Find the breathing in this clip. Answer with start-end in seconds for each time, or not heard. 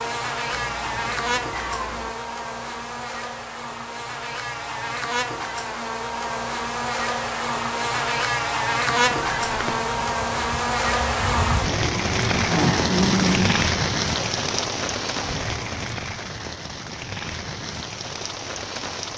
not heard.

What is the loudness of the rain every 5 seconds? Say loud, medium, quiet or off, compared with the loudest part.
off, off, loud, medium.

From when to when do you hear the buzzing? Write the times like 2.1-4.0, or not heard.
0.0-13.7.